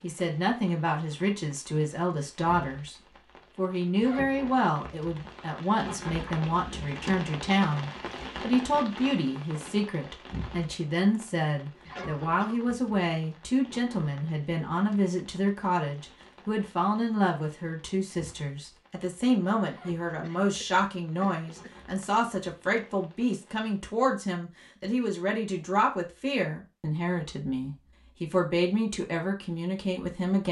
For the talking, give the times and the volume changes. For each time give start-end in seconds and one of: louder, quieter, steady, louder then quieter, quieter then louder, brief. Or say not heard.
0.0-3.0 brief
3.5-30.4 steady.